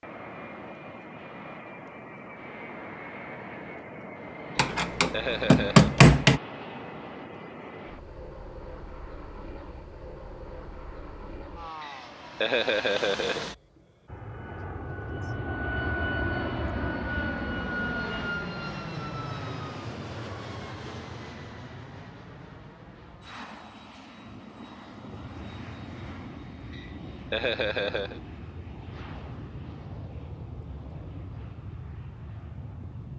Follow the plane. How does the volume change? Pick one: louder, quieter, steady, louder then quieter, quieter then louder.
louder then quieter.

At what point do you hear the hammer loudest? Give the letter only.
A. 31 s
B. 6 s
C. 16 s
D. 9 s
B.